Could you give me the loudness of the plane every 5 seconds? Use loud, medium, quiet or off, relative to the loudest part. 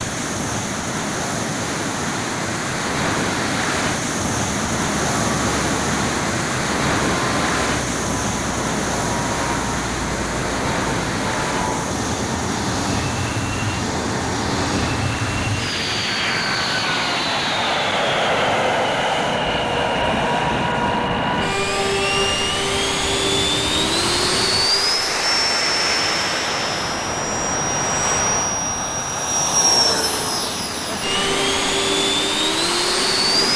off, medium, medium, loud, loud, loud, loud.